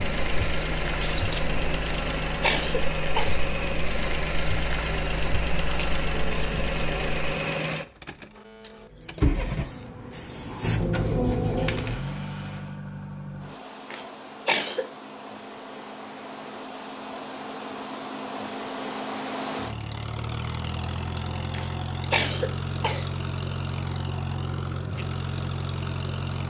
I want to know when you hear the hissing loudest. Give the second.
11 s.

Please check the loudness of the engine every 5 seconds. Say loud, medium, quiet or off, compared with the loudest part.
loud, loud, medium, medium, loud, loud.